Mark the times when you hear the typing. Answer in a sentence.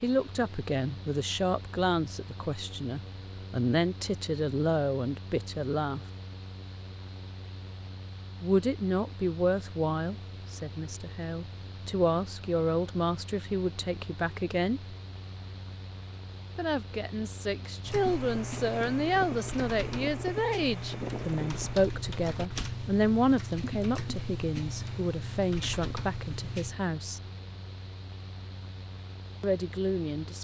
The typing can be heard from 17.8 to 26.8 s.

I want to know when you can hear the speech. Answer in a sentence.
You can hear the speech from 0.0 to 6.0 s, from 8.4 to 14.9 s, from 16.6 to 27.2 s and from 29.4 to 30.3 s.